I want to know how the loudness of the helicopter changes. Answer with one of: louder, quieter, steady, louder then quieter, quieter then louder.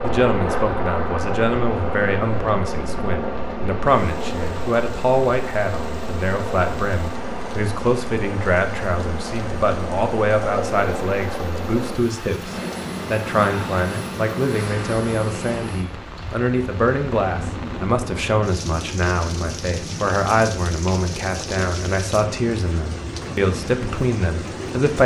quieter.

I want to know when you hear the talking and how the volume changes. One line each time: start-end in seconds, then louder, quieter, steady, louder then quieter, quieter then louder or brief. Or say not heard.
0.0-25.0 steady.